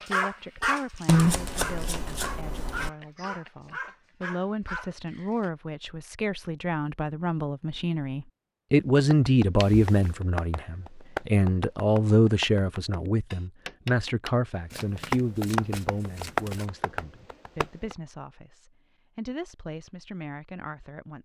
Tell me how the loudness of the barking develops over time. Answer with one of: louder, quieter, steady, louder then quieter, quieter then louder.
quieter.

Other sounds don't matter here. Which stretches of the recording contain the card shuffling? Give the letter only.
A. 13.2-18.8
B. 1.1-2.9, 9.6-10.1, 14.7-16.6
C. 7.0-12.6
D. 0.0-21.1
B.